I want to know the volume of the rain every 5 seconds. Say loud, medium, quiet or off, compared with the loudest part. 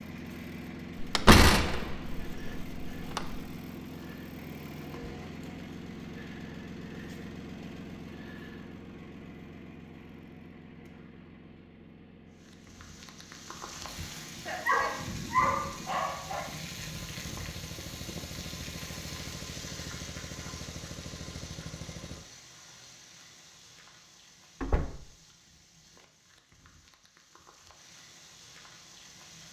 off, off, loud, loud, medium, quiet.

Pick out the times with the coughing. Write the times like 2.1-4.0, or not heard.
not heard.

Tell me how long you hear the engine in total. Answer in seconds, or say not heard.
22 s.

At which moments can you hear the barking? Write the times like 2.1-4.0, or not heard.
14.4-16.4.